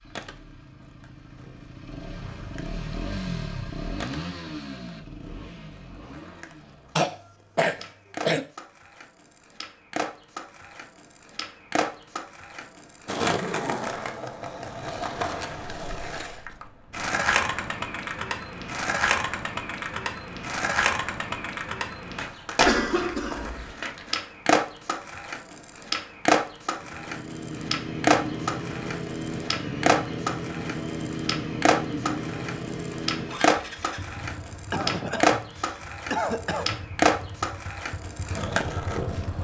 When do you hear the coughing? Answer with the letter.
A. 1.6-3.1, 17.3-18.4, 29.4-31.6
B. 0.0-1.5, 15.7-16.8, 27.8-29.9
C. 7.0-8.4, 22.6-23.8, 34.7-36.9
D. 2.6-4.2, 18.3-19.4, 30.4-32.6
C.